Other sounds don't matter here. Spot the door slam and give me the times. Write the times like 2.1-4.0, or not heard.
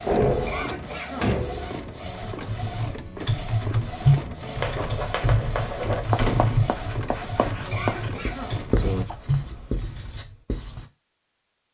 0.1-1.9, 6.2-6.8.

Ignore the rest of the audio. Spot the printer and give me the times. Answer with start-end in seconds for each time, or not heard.
0.0-9.1.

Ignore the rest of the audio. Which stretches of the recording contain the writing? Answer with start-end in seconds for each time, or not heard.
4.6-10.8.